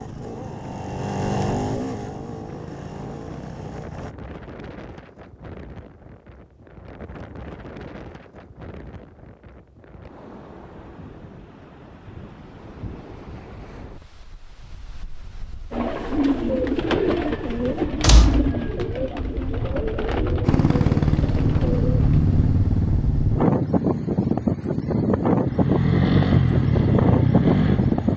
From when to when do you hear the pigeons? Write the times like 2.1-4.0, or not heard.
15.7-22.3.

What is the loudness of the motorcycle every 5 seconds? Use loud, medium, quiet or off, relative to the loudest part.
medium, off, off, off, loud, loud.